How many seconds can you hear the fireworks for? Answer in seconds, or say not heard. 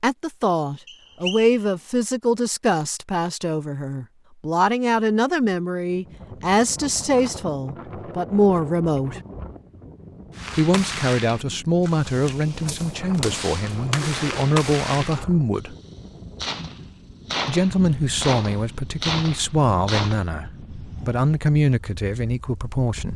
10 s.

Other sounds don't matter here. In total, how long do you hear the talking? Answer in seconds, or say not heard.
20 s.